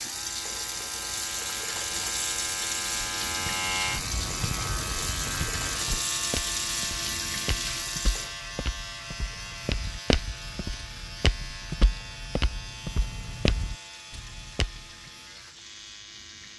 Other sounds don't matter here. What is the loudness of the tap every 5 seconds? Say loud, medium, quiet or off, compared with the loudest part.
loud, loud, quiet, quiet.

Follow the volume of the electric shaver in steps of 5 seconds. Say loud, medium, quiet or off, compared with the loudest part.
loud, loud, medium, quiet.